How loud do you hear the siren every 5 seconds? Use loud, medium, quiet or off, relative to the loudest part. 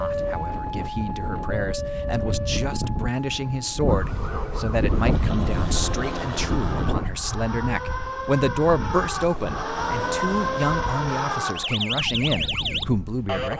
medium, medium, loud.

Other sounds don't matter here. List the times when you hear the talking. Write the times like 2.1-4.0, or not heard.
0.0-13.5.